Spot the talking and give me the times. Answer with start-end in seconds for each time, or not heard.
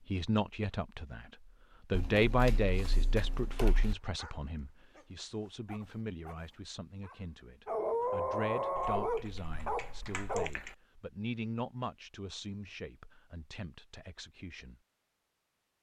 0.1-14.8.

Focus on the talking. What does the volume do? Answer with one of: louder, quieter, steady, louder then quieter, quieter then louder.
quieter.